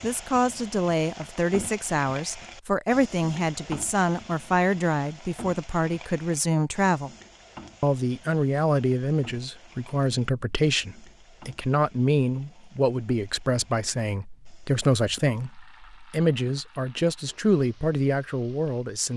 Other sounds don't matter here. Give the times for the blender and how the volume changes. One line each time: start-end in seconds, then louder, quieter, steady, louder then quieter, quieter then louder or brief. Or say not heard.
not heard.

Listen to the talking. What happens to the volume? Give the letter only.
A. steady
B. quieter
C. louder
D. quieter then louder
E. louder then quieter
A.